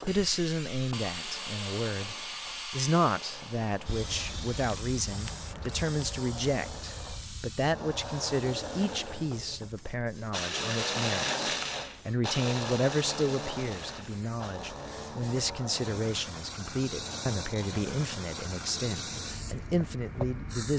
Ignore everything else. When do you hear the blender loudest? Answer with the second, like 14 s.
11 s.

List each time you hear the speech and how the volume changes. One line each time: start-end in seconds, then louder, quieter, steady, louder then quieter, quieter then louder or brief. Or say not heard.
0.0-20.7 steady.